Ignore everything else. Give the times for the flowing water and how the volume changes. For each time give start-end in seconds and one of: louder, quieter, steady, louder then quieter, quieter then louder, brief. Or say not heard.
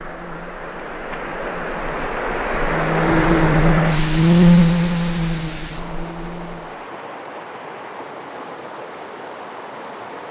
0.0-10.2 louder then quieter.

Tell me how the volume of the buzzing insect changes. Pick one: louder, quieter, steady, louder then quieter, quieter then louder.
louder then quieter.